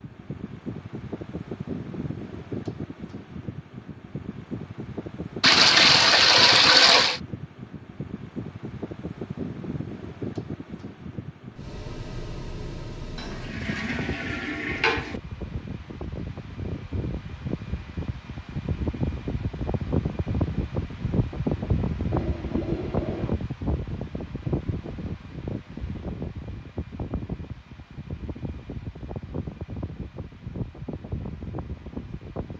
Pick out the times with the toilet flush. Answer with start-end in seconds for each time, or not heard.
5.4-7.2, 13.2-15.2, 22.1-23.4.